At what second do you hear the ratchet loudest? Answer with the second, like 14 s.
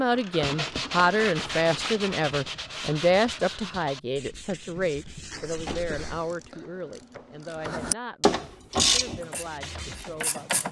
9 s.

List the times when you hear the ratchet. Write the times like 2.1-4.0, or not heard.
0.0-2.0, 5.3-10.6.